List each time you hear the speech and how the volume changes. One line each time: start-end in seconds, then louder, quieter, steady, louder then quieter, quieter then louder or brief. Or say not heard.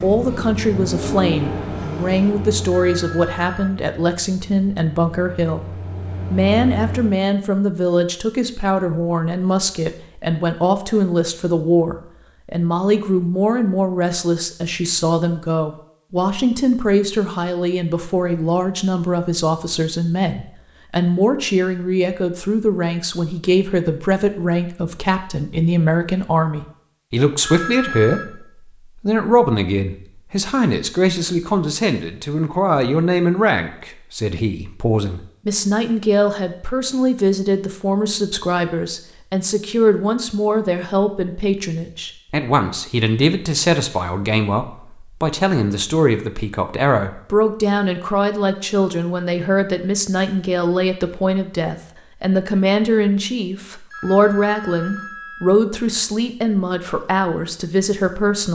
0.0-58.4 steady.